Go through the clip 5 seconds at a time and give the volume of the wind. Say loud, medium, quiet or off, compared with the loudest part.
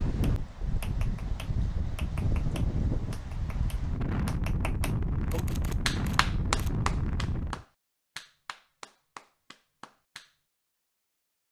loud, loud, off.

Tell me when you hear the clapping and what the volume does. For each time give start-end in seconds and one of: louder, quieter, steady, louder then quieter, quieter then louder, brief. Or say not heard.
0.2-10.3 louder then quieter.